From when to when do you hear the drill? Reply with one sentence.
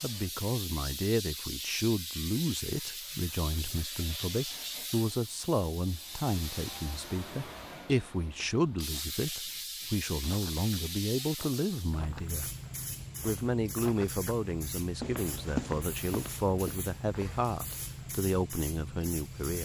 The drill can't be heard in this clip.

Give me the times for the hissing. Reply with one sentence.
The hissing can be heard from 0.0 to 19.5 s.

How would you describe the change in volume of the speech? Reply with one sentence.
The loudness of the speech stays about the same.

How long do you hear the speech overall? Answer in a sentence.
You can hear the speech for 19 seconds altogether.